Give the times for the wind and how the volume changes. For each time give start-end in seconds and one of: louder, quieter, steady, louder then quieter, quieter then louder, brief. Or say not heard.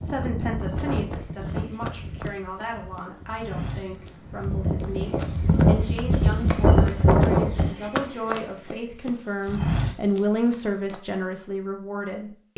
0.0-7.7 quieter then louder.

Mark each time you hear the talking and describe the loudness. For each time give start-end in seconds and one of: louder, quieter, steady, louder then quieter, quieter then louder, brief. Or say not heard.
0.0-12.5 louder.